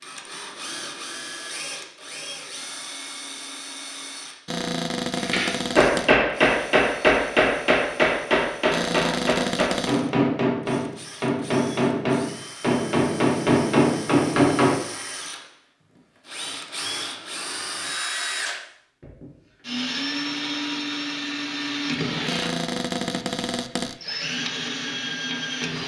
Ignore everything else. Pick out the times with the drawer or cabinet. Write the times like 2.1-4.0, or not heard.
4.5-6.1, 8.7-10.1, 22.2-23.9.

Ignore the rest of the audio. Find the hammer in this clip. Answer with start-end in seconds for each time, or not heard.
5.2-14.8.